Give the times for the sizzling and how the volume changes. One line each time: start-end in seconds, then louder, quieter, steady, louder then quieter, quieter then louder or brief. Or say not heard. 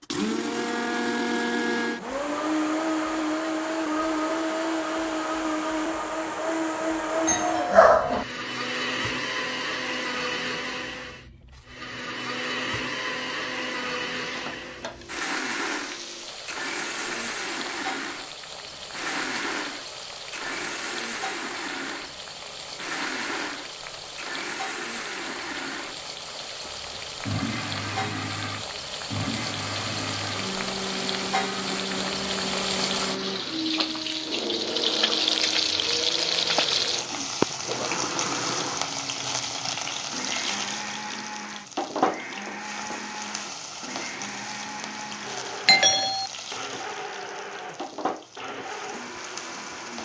14.2-50.0 louder then quieter.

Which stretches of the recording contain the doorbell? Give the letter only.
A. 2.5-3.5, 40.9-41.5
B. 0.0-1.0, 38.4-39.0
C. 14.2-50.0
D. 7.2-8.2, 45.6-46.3
D.